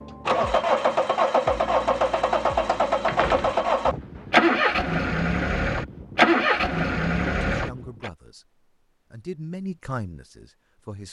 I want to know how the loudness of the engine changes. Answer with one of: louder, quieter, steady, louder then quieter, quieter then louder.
steady.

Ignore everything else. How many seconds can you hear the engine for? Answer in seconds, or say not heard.
8 s.